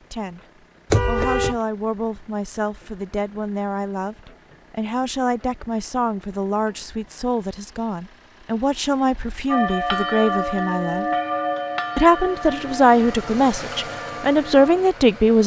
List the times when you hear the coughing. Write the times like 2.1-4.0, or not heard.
not heard.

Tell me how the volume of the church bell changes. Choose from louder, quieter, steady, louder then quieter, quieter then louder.
quieter.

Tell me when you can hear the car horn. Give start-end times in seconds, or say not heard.
0.9-1.6.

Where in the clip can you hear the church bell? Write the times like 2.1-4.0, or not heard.
9.4-14.8.